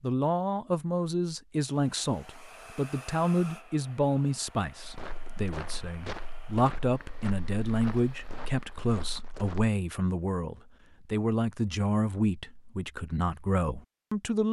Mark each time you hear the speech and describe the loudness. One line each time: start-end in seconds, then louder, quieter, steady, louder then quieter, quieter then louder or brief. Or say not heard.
0.0-14.4 steady.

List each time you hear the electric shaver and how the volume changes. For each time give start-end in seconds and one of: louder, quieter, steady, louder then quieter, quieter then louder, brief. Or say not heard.
not heard.